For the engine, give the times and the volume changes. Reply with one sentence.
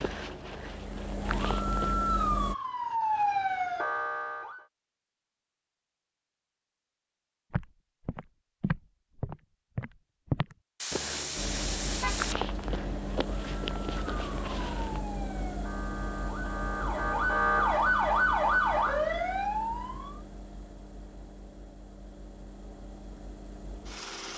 The engine can be heard briefly from 0.2 to 2.5 s; and from 11.3 to 24.3 s, getting quieter.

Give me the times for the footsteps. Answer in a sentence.
You can hear the footsteps from 0.0 to 1.9 s and from 7.5 to 15.0 s.